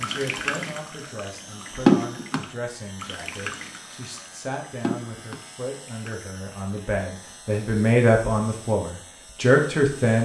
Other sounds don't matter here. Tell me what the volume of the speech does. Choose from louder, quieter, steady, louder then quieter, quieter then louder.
louder.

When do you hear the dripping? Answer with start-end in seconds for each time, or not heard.
0.0-6.9.